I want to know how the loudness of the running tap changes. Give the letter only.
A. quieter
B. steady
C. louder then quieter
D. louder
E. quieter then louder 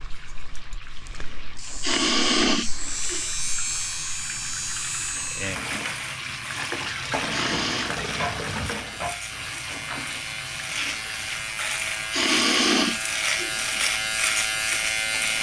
C.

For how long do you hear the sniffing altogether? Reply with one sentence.
The sniffing can be heard for 4 seconds in total.